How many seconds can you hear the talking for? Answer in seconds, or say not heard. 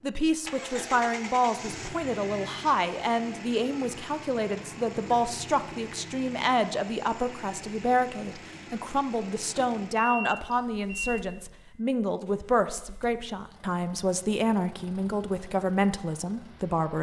17 s.